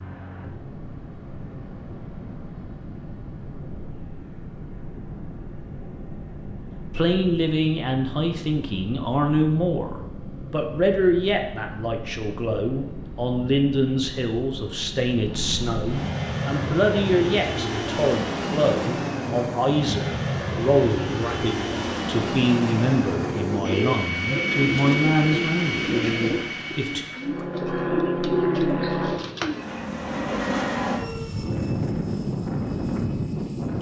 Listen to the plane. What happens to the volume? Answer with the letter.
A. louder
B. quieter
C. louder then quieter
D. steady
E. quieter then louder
A.